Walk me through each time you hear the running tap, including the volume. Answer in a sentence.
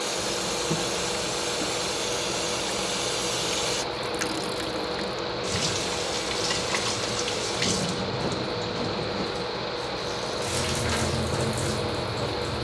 You can hear the running tap from 0.0 to 12.5 s, at a steady volume.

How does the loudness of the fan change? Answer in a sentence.
The loudness of the fan stays about the same.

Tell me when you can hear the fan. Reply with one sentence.
You can hear the fan from 0.0 to 12.5 s.